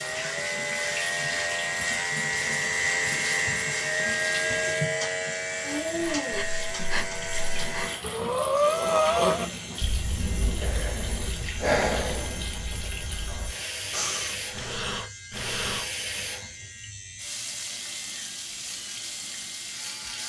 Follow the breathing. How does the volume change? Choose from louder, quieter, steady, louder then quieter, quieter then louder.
louder then quieter.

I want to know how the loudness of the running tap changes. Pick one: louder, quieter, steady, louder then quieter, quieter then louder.
steady.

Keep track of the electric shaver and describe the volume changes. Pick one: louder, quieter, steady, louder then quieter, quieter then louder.
quieter.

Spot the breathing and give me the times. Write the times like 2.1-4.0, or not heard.
6.0-15.9.